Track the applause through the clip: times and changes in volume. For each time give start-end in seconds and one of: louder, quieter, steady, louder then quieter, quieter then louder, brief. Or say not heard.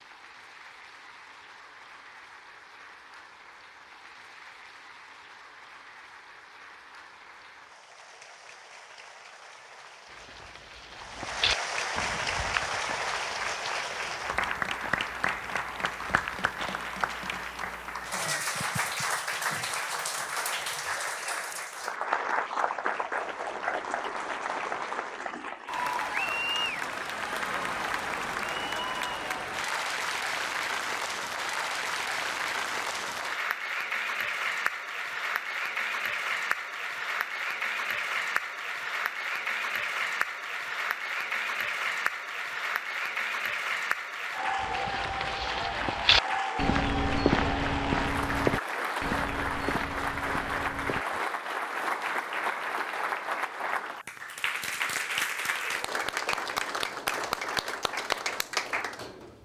0.0-59.4 louder.